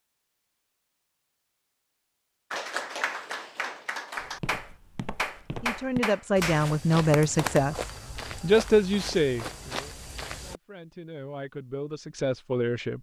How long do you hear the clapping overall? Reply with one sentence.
You can hear the clapping for 5 seconds altogether.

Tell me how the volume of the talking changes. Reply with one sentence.
The volume of the talking goes down, then up.